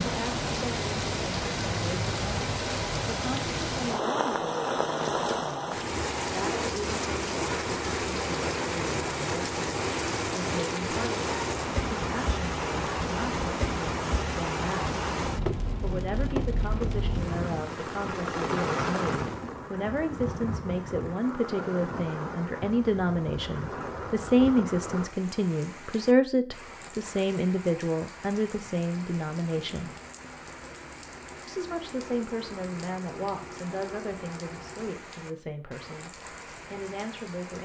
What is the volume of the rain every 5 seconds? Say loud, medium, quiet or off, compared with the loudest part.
loud, loud, loud, loud, medium, quiet, quiet, quiet.